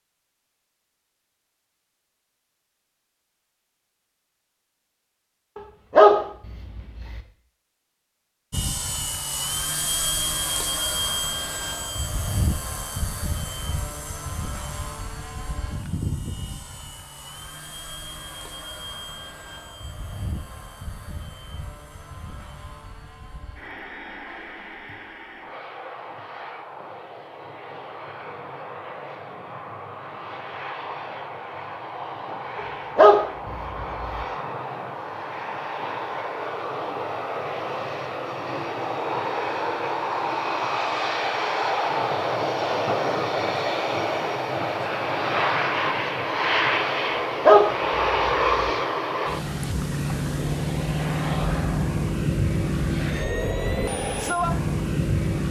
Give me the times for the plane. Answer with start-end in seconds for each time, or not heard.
8.5-55.4.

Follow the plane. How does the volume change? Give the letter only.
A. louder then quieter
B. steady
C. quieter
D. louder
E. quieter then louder
E.